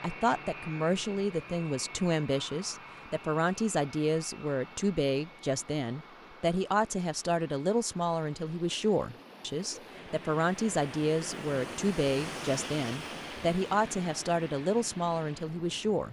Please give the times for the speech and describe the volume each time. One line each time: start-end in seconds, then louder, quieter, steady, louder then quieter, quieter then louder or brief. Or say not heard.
0.0-16.0 steady.